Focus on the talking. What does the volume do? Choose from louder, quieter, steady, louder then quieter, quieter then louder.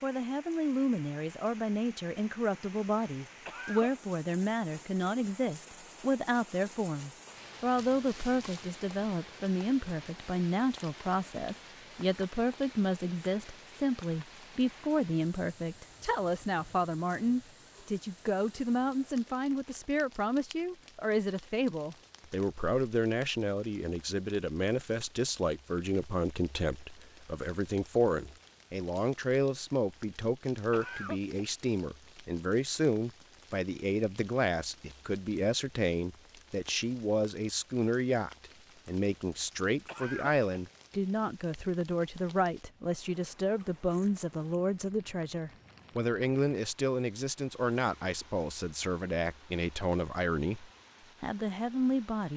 steady.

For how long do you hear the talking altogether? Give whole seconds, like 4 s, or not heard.
52 s.